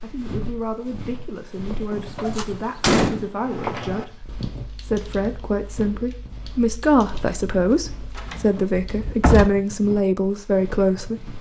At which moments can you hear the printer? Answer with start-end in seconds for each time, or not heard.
not heard.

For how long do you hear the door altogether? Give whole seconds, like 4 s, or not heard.
3 s.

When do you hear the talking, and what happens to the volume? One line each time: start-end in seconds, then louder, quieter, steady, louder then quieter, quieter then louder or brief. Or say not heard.
0.0-11.3 louder.